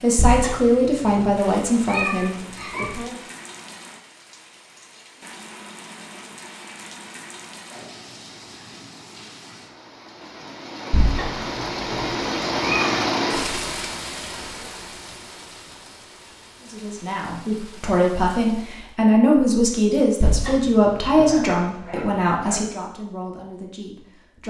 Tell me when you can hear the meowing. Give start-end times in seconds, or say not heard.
0.1-2.9, 10.9-12.9, 20.2-21.5.